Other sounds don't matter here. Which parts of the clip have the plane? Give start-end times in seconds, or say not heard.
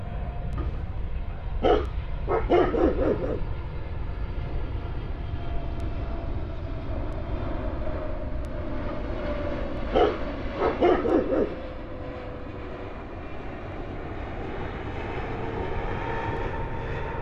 0.0-17.1.